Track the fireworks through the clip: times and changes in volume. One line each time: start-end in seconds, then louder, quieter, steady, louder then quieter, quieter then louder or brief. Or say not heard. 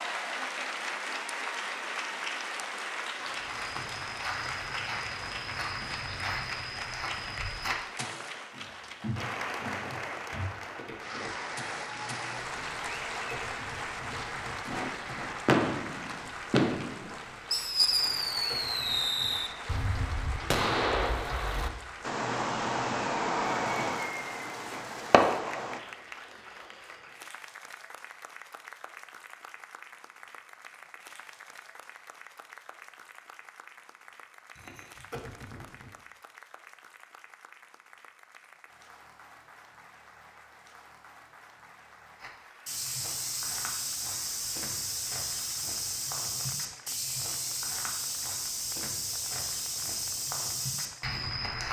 15.4-25.8 steady.